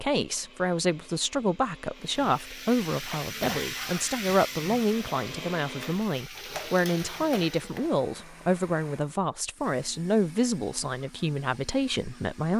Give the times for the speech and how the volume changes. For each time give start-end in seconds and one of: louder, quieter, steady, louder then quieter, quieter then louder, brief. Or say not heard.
0.0-12.5 steady.